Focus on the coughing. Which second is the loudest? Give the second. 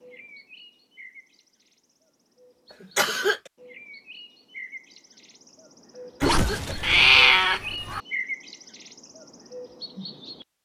3 s.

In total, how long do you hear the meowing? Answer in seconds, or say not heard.
2 s.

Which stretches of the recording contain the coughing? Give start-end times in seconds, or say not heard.
2.8-3.5, 6.2-7.0.